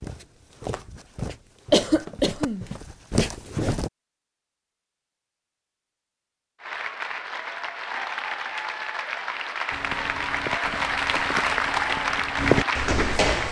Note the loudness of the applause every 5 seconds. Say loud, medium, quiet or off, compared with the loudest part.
off, medium, loud.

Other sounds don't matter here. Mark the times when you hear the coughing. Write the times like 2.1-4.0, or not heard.
1.7-2.6.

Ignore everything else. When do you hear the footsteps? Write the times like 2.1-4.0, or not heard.
0.0-3.9, 9.7-13.4.